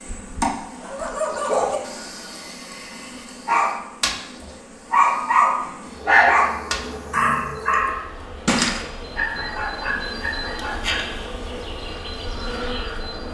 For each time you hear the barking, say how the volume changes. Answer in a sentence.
The barking can be heard from 0.8 to 11.1 s, getting louder then quieter.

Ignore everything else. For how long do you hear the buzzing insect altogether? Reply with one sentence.
The buzzing insect can be heard for 13 seconds in total.